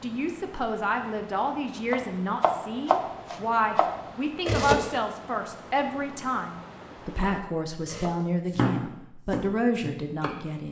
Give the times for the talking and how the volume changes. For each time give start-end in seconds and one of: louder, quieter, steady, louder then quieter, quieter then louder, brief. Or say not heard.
0.0-10.6 steady.